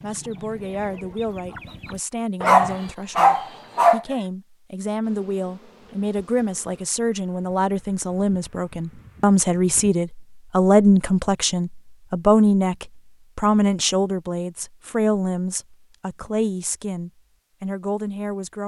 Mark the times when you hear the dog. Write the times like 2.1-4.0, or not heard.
2.5-4.0.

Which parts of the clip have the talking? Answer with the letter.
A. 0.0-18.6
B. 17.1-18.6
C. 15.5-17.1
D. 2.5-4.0
A.